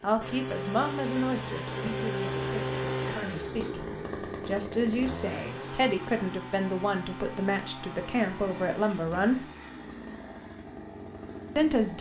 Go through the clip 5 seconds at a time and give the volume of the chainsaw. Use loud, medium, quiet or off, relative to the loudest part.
loud, medium, medium.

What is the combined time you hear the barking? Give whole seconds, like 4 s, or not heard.
not heard.